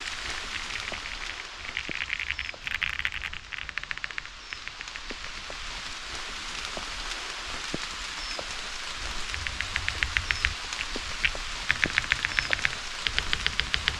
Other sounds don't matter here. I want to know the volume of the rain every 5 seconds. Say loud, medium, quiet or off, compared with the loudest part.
medium, loud, loud.